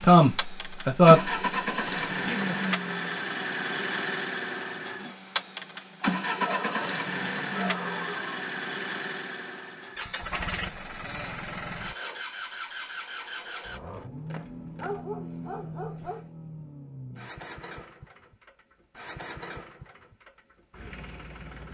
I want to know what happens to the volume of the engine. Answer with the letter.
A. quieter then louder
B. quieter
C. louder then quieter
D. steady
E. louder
B.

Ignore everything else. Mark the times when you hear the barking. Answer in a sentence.
You can hear the barking from 6.3 to 8.3 s and from 14.8 to 16.2 s.